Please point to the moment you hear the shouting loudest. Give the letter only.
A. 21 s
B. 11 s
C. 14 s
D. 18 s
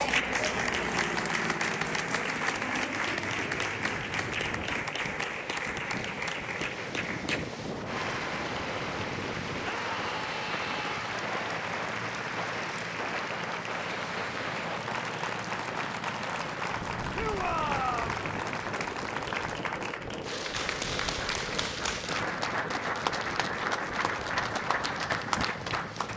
D.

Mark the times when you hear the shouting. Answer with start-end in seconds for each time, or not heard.
9.6-11.1, 17.1-18.1.